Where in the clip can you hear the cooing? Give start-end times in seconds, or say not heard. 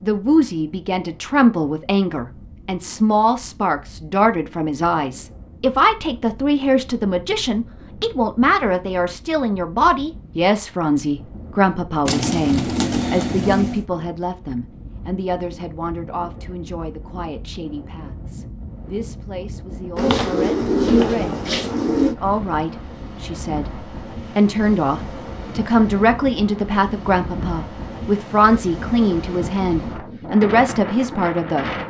12.1-13.8, 19.9-22.1.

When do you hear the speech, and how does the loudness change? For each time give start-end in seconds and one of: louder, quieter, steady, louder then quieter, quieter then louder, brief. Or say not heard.
0.0-21.4 quieter
22.1-31.7 louder.